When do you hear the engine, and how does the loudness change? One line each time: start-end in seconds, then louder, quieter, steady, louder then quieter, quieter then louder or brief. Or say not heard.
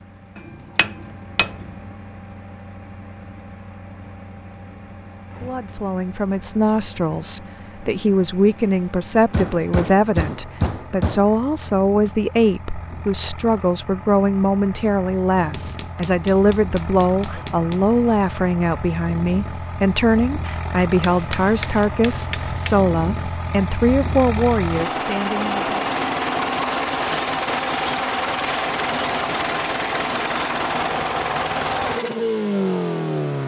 0.0-33.4 louder.